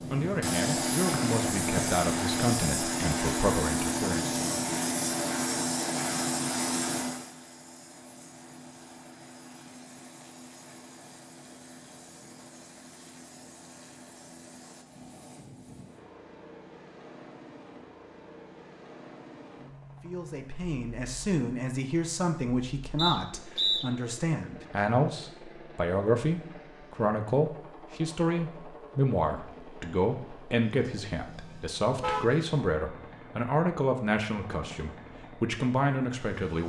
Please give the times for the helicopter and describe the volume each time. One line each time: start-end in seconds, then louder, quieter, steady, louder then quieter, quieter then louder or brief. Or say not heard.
0.0-36.6 quieter.